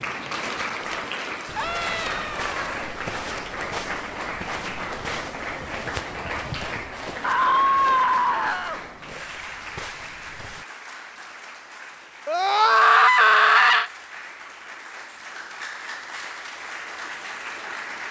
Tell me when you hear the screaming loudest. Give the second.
13 s.